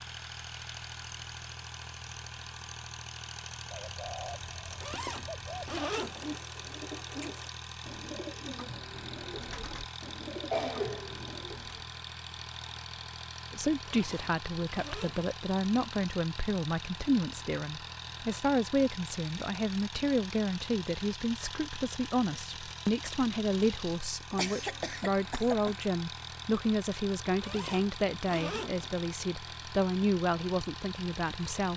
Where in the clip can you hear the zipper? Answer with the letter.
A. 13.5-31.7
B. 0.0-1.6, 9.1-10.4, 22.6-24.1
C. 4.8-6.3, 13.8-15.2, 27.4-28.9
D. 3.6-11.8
C.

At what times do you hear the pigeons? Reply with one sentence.
The pigeons can be heard from 3.6 to 11.8 s.